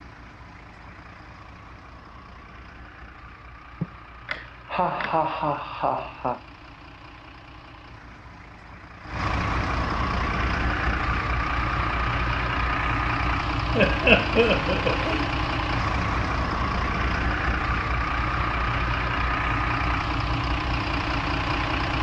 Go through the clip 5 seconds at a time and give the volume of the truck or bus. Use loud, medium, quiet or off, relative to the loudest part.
quiet, medium, loud, loud, loud.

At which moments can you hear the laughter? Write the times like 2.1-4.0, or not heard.
3.8-6.4, 13.8-15.2.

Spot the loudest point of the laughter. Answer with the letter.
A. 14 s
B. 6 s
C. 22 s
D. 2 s
A.